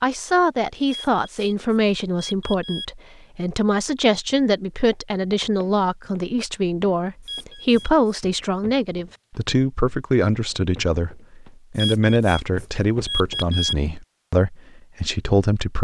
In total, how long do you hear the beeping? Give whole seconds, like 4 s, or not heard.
5 s.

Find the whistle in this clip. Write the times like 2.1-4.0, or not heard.
not heard.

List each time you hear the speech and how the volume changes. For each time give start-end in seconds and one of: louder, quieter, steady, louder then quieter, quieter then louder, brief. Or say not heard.
0.0-15.8 steady.